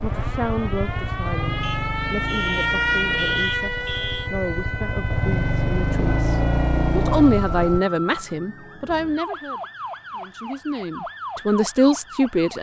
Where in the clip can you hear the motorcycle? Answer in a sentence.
You can hear the motorcycle from 0.0 to 7.8 s.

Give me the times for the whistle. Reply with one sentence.
The whistle can't be heard in this clip.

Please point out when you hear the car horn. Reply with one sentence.
You can hear the car horn from 1.6 to 4.3 s.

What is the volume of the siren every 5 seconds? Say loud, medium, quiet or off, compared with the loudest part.
loud, medium, medium.